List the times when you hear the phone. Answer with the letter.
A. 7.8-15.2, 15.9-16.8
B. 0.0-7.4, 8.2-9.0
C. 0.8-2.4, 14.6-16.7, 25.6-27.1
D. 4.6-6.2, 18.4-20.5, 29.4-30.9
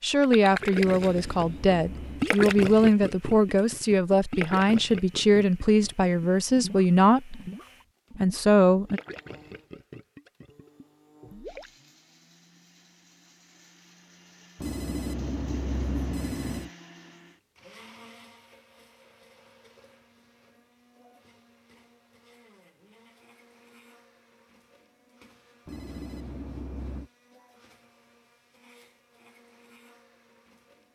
C.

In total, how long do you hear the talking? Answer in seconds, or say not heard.
8 s.